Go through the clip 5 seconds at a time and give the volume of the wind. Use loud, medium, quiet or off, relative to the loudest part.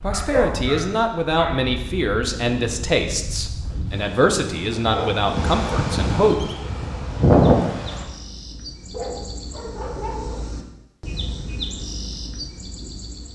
quiet, loud, off.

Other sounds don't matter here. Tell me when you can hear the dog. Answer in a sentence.
The dog can be heard from 0.1 to 1.6 s, from 4.8 to 5.3 s and from 8.9 to 10.5 s.